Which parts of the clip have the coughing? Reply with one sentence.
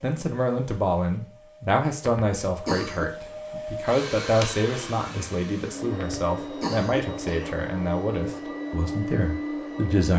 The coughing can be heard from 2.0 to 3.0 s and from 6.0 to 7.6 s.